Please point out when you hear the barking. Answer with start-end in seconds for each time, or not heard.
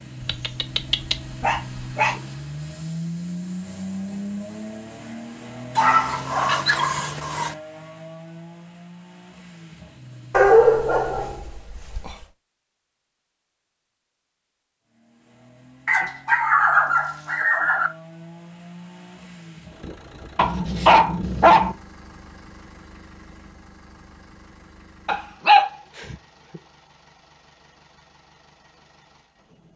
0.2-2.2, 5.8-7.5, 10.3-12.2, 15.8-17.9, 20.4-21.8, 25.1-26.6.